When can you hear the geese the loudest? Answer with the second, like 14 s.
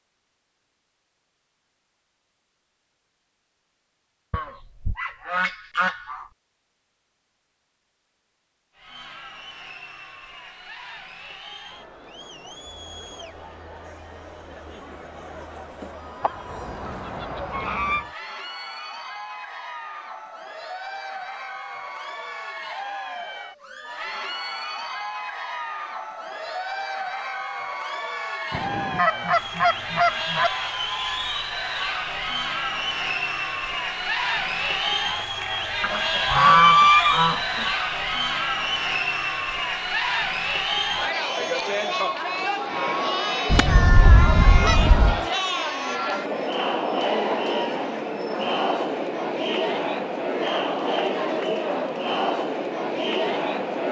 37 s.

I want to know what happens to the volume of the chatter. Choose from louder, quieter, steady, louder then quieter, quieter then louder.
louder.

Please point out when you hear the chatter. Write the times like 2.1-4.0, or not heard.
8.8-53.8.